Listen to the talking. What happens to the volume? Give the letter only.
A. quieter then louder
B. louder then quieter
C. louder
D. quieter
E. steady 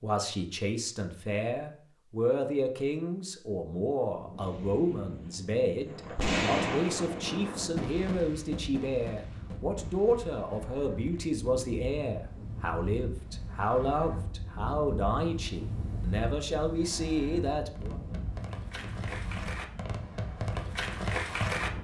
E.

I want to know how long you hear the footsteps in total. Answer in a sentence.
You can't hear the footsteps here.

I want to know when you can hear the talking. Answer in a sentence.
You can hear the talking from 0.0 to 17.9 s.